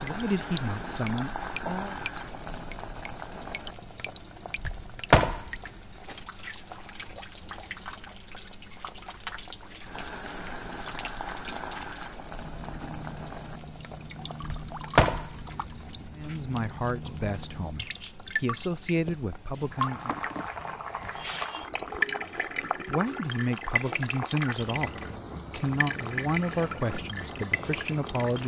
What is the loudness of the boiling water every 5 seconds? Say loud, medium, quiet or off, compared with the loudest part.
medium, loud, loud, medium, medium, medium.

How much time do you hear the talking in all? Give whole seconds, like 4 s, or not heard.
12 s.